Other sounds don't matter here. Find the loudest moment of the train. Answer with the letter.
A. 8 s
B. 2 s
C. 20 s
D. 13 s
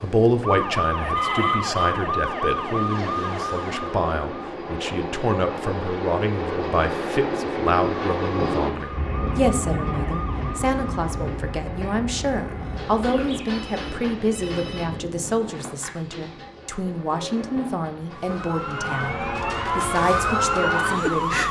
A.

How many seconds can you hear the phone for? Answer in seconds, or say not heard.
3 s.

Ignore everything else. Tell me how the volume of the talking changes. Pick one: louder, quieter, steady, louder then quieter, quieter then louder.
steady.